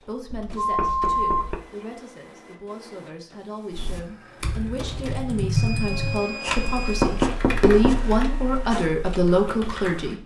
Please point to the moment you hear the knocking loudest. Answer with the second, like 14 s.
7 s.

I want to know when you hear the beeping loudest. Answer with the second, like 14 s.
1 s.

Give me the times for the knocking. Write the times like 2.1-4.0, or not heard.
0.3-1.6, 6.5-8.1.